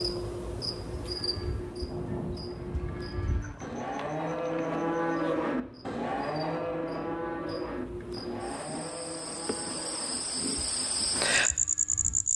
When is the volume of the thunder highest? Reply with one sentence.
The loudest moment of the thunder is at 2 seconds.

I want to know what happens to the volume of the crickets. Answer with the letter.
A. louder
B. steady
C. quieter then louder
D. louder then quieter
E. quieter
C.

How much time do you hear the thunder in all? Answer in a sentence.
The thunder can be heard for 2 seconds in total.